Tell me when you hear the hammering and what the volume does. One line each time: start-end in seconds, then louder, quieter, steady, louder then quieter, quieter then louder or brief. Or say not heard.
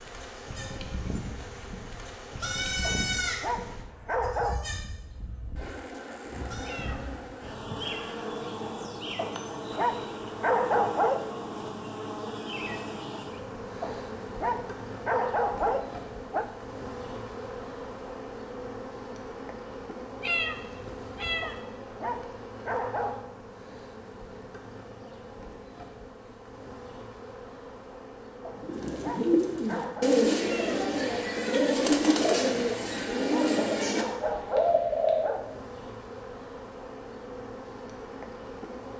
not heard.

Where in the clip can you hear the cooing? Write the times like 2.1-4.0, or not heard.
28.6-35.4.